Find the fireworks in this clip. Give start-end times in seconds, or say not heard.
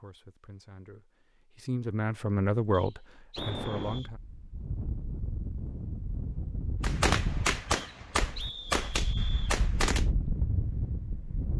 6.8-10.1.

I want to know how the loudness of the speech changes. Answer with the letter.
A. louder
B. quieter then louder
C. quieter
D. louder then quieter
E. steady
D.